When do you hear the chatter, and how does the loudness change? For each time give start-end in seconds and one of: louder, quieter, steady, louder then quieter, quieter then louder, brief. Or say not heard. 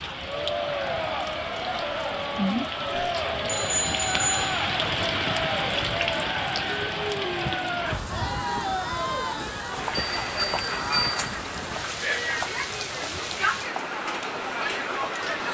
0.1-15.4 steady.